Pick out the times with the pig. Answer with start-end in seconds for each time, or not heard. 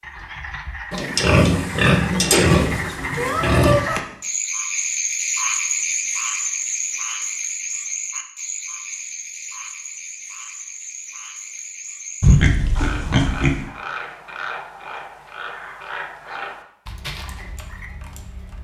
0.9-3.9, 12.2-13.6.